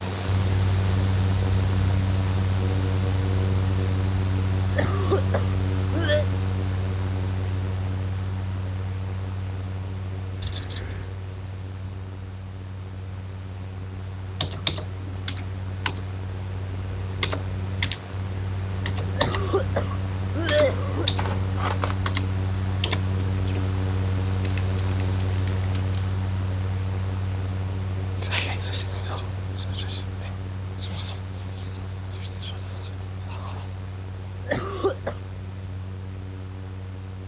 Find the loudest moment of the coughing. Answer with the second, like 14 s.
21 s.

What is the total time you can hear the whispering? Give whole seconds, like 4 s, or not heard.
6 s.